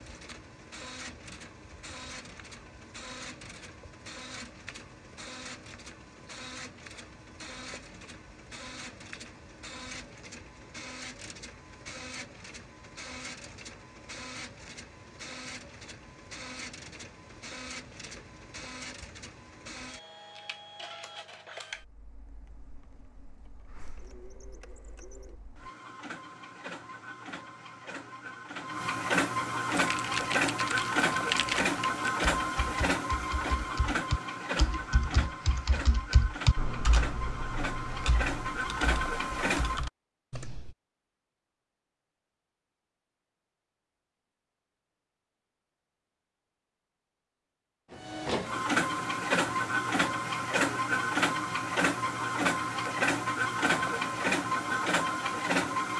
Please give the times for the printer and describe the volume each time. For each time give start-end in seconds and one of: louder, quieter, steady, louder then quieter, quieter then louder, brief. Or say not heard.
0.0-39.9 louder
47.9-55.9 steady.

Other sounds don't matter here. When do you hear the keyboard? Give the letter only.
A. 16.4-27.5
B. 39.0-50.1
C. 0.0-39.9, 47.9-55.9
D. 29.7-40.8
D.